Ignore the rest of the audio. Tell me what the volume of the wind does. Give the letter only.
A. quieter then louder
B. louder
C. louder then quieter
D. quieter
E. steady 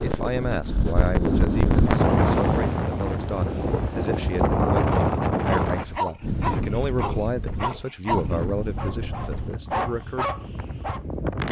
D.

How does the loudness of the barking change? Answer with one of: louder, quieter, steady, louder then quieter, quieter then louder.
quieter then louder.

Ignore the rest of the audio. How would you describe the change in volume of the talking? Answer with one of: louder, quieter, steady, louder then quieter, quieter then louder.
steady.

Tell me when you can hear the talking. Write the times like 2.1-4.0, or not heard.
0.0-10.4.